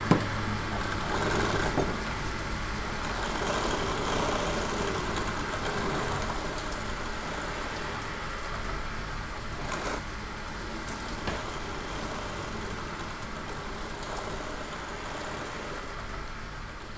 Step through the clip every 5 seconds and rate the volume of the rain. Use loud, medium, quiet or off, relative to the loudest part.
loud, loud, medium, medium.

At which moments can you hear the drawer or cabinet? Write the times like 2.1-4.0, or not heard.
5.9-6.3, 10.5-11.5.